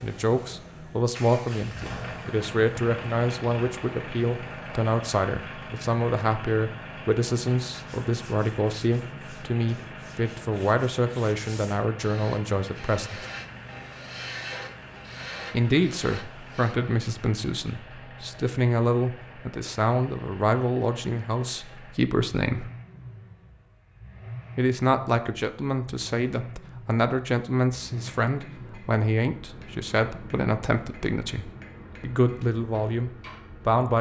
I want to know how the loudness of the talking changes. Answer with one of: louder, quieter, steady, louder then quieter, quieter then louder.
steady.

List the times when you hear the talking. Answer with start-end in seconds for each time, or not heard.
0.0-13.2, 15.5-22.7, 24.6-33.9.